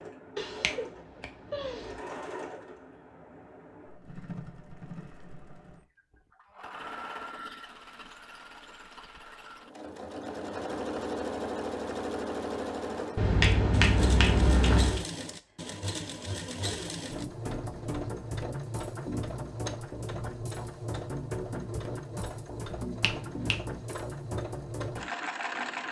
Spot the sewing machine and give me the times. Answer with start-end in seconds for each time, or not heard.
0.0-25.8.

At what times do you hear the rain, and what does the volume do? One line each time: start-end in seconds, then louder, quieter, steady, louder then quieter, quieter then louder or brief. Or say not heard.
not heard.